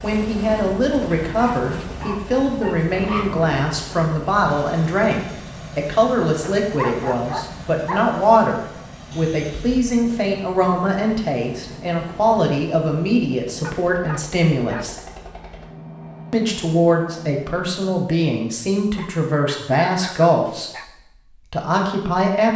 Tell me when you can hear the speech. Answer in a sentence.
The speech can be heard from 0.0 to 15.0 s and from 16.3 to 22.5 s.